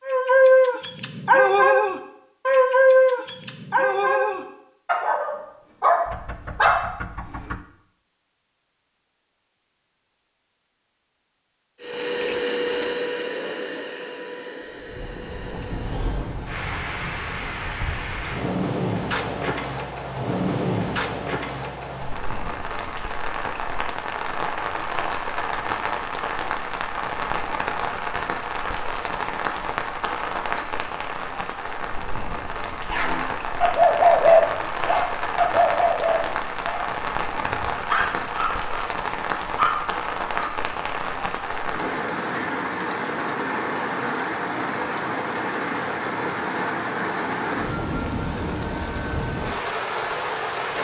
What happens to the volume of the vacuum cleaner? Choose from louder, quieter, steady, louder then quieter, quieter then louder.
quieter.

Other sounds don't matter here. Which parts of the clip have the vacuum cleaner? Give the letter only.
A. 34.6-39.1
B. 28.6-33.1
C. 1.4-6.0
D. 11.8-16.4
D.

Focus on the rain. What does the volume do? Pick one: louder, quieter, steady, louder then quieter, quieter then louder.
steady.